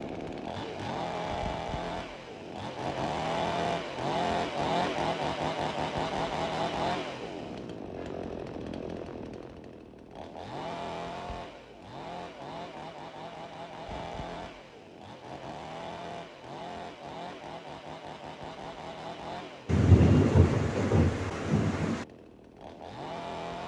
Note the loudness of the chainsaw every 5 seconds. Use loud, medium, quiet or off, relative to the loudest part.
loud, loud, medium, medium, medium.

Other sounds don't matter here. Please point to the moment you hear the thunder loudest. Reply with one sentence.
The loudest moment of the thunder is at 20 seconds.